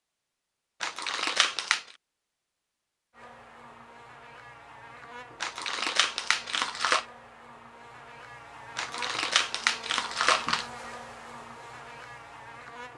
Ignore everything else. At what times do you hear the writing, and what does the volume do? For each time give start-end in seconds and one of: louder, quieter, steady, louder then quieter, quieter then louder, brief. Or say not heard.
not heard.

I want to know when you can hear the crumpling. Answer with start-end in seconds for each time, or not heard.
0.8-1.9, 5.4-7.0, 8.8-10.7.